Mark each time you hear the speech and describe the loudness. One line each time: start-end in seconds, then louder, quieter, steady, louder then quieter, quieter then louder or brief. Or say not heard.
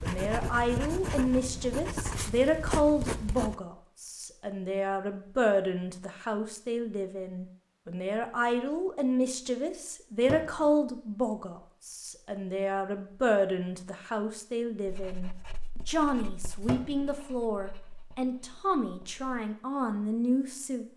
0.0-20.9 steady.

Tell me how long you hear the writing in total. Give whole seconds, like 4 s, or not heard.
8 s.